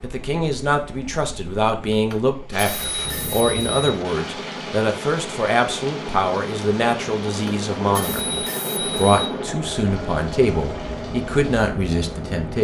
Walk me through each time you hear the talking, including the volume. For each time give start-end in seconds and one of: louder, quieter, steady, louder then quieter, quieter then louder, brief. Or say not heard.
0.0-12.5 steady.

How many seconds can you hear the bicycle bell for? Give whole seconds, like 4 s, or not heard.
4 s.